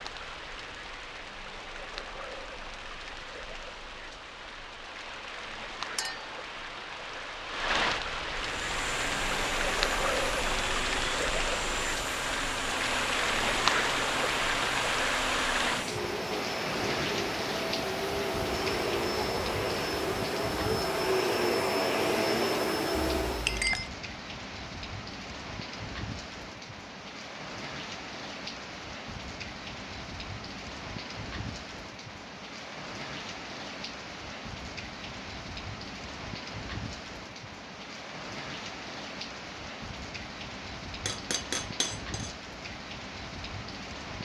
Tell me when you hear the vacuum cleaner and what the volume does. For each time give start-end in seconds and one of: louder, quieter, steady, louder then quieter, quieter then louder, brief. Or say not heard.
8.4-23.7 louder.